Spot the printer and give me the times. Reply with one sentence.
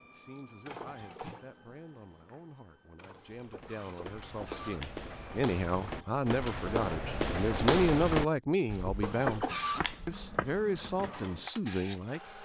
The printer can be heard from 0.0 to 6.2 s and from 9.0 to 12.3 s.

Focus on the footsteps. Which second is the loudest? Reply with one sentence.
The loudest moment of the footsteps is at 8 seconds.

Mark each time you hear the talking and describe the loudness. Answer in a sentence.
You can hear the talking from 0.0 to 9.4 s, getting louder; and briefly from 10.1 to 12.2 s.